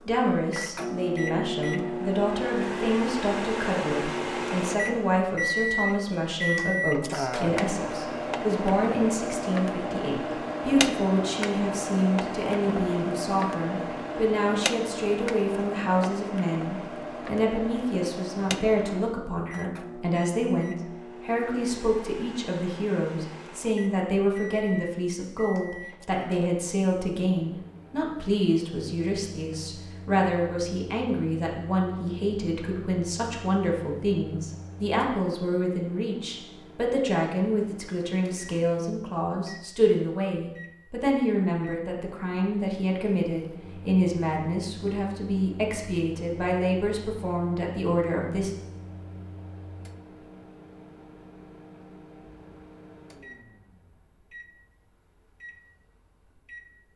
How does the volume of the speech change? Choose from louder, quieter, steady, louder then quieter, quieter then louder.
steady.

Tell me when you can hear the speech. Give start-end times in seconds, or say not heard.
0.1-48.5.